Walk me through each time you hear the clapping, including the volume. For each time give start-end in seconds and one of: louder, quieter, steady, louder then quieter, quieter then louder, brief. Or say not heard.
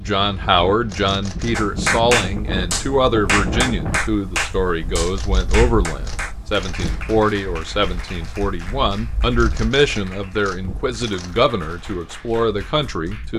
1.5-13.3 quieter.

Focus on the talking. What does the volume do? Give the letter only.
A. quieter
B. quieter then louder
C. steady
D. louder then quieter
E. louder
C.